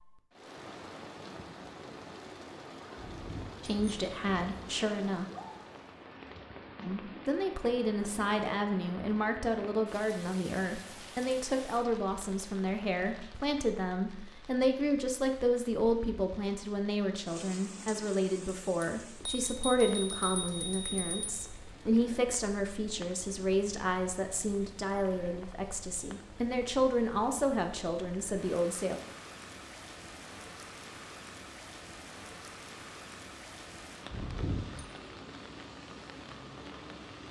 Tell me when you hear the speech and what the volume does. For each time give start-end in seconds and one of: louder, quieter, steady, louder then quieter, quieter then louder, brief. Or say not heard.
3.6-5.2 brief
6.8-29.0 steady.